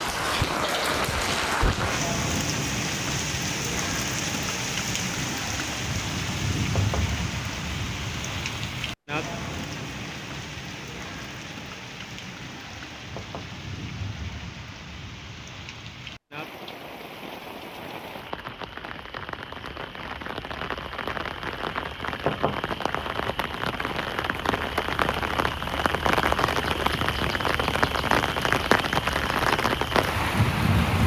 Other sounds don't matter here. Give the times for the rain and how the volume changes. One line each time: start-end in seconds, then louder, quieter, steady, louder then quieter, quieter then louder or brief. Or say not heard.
0.0-31.0 quieter then louder.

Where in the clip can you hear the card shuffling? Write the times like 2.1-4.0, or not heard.
not heard.